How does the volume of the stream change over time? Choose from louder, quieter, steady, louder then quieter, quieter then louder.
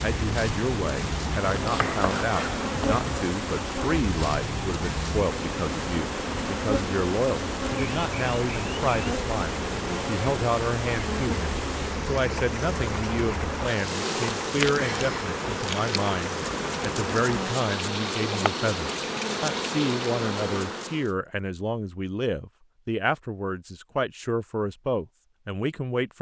steady.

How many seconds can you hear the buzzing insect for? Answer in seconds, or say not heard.
21 s.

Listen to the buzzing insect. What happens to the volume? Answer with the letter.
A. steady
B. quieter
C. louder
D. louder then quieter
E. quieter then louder
A.